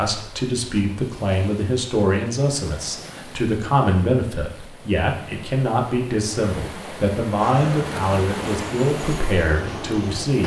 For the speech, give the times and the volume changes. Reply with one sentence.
The speech can be heard from 0.0 to 10.4 s, at a steady volume.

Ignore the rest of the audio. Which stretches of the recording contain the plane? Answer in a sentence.
The plane can be heard from 7.3 to 10.4 s.